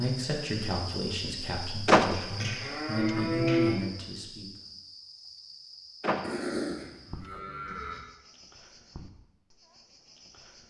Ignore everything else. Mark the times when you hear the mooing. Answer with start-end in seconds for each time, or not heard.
2.1-3.7, 6.2-8.0.